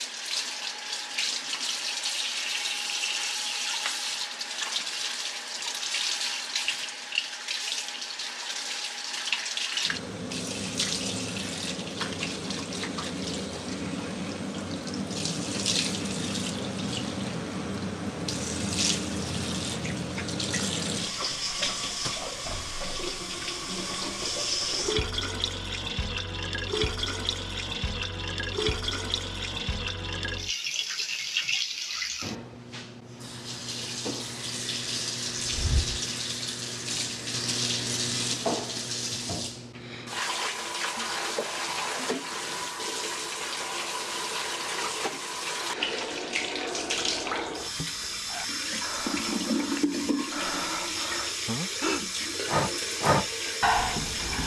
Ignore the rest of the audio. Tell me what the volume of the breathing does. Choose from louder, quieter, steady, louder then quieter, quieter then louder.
louder.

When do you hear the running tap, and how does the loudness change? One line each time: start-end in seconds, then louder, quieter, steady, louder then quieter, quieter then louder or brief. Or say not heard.
0.0-54.4 steady.